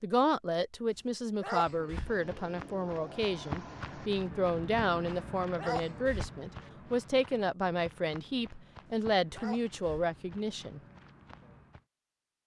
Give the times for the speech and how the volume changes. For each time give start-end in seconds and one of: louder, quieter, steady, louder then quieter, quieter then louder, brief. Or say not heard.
0.0-10.8 steady.